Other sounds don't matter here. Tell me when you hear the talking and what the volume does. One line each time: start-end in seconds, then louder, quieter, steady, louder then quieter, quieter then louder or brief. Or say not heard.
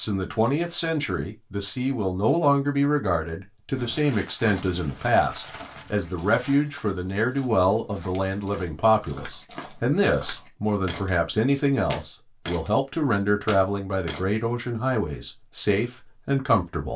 0.0-16.9 steady.